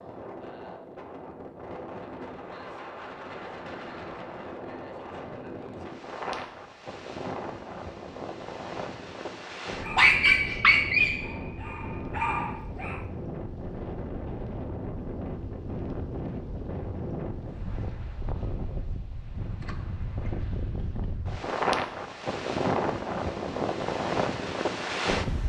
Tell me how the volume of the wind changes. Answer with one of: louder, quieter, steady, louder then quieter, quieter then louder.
louder.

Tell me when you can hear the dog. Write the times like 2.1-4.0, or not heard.
9.8-13.0.